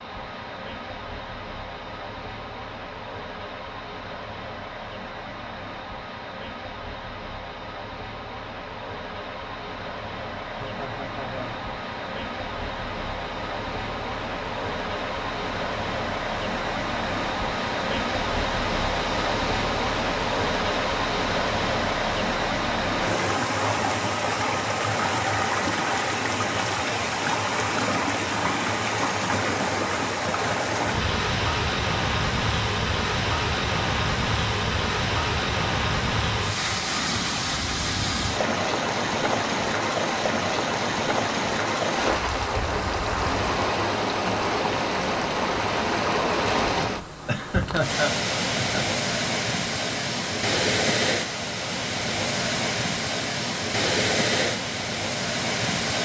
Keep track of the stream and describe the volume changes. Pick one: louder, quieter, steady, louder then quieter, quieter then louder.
louder.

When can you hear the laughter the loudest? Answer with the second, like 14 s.
48 s.